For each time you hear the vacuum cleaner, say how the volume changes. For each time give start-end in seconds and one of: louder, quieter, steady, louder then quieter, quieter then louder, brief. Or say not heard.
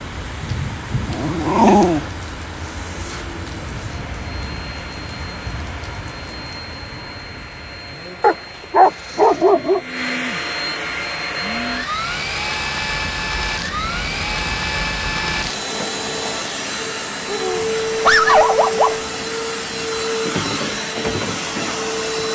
0.0-22.3 louder.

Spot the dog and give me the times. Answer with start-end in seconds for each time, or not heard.
1.1-2.0, 8.2-9.8, 17.2-19.0.